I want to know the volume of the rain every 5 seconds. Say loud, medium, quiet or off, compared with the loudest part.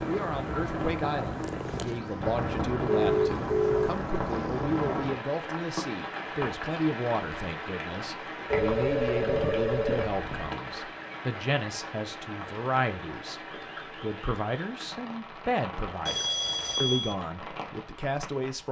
loud, loud, medium, medium.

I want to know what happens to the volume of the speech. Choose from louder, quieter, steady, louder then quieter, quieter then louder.
steady.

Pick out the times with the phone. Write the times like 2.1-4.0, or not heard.
2.9-4.0, 8.5-10.5, 16.1-17.1.